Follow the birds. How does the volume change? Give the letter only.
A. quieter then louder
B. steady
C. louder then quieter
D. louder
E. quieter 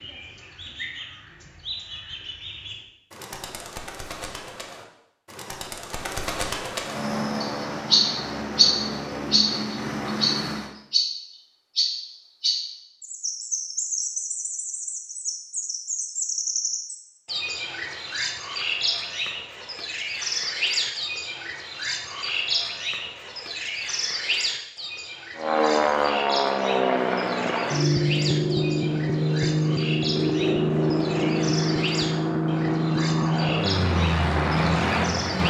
C.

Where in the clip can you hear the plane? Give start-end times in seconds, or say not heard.
6.8-10.8, 25.4-35.4.